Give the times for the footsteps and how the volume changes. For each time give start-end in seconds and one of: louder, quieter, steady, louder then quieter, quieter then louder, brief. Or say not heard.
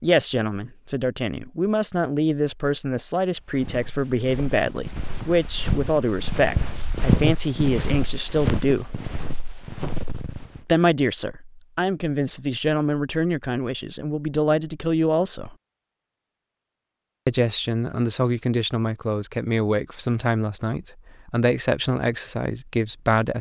3.4-10.6 louder then quieter.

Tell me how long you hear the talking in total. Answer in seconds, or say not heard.
20 s.